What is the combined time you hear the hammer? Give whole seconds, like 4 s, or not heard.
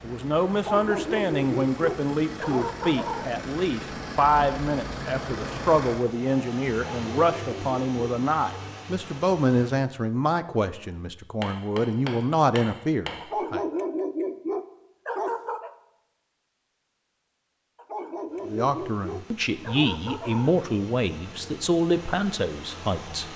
2 s.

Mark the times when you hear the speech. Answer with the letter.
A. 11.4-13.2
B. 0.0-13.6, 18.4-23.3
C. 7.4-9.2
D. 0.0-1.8
B.